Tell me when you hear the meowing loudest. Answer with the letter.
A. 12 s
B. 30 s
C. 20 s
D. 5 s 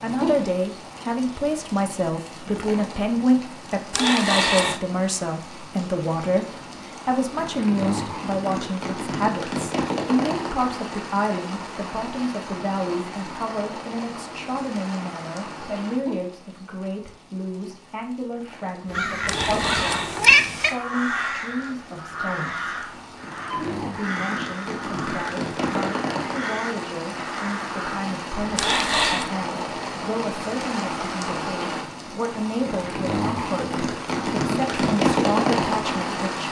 C.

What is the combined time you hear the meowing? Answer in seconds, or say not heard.
3 s.